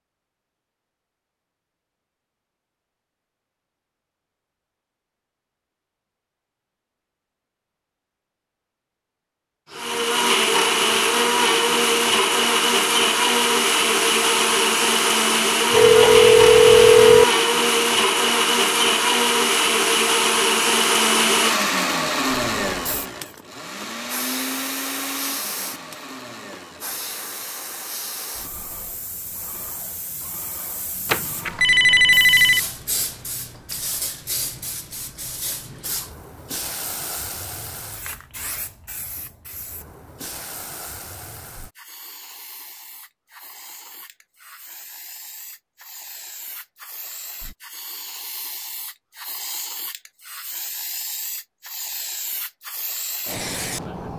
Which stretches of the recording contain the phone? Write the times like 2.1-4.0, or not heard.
15.7-17.2, 31.1-32.6.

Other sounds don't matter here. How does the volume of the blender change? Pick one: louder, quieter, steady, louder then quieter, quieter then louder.
quieter.